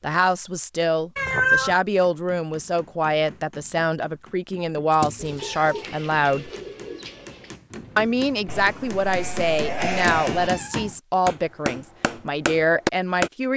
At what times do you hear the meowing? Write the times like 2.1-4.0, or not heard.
1.1-1.8, 4.9-5.8, 9.9-10.9.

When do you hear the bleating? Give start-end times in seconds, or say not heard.
8.4-10.5.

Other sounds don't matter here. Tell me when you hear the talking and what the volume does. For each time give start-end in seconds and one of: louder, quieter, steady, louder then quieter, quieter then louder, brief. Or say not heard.
0.0-6.5 steady
8.0-13.5 steady.